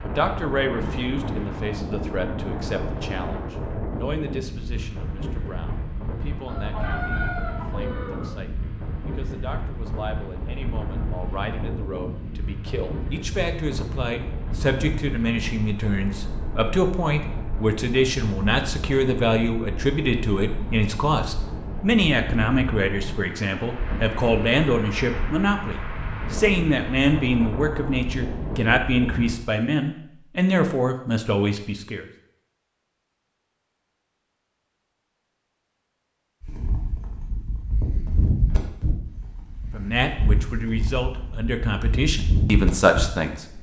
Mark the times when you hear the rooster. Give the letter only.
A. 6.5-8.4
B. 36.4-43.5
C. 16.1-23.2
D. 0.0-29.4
A.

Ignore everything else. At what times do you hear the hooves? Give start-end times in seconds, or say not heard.
36.4-43.5.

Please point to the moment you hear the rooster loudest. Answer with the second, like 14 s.
7 s.